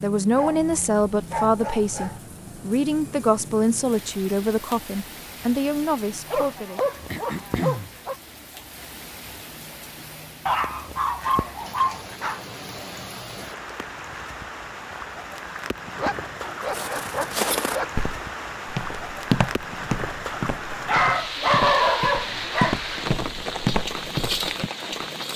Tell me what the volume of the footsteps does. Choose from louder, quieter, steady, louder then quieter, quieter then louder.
quieter then louder.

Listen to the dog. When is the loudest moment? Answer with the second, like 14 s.
22 s.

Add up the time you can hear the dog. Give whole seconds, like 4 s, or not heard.
10 s.